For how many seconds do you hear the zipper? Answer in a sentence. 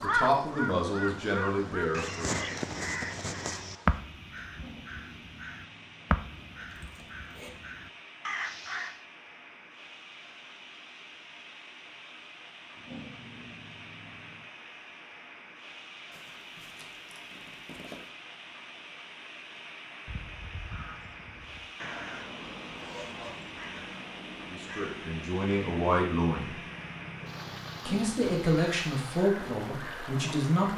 The zipper can be heard for 4 seconds in total.